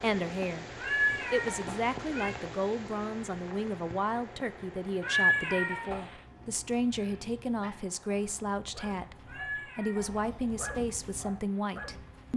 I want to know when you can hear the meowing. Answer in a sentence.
The meowing can be heard from 0.8 to 2.3 s, from 5.0 to 6.2 s and from 9.2 to 10.6 s.